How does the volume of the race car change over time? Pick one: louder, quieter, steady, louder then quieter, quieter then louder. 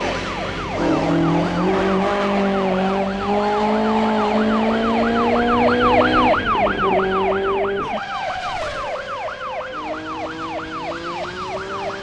quieter.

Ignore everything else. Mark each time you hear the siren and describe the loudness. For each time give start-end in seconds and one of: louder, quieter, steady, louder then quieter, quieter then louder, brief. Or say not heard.
0.1-11.9 louder then quieter.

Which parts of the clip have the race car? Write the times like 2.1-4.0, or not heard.
0.0-11.9.